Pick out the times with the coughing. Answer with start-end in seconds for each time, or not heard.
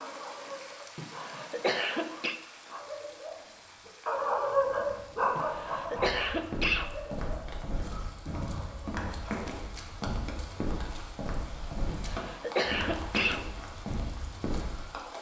0.9-2.4, 5.3-7.0, 11.8-13.4.